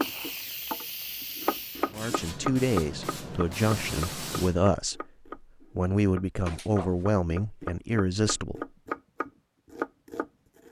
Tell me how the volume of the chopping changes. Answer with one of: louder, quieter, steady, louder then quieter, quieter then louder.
quieter then louder.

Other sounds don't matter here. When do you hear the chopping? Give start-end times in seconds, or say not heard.
0.0-10.6.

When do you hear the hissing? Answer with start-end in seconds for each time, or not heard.
0.0-4.7.